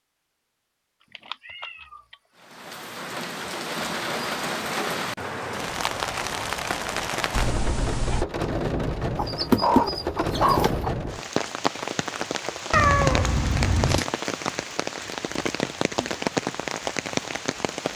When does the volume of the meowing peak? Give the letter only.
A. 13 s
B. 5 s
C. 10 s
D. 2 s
A.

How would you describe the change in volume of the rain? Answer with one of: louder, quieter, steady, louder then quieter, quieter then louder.
steady.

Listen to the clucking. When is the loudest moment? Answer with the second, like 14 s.
10 s.